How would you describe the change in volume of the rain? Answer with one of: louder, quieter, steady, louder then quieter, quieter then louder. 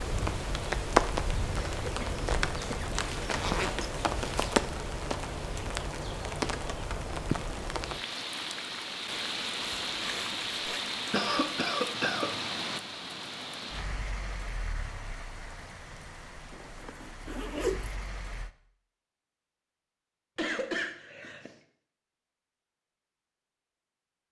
quieter.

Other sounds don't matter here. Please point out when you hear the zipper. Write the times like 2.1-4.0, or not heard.
3.0-4.6, 9.6-10.8, 16.5-18.1.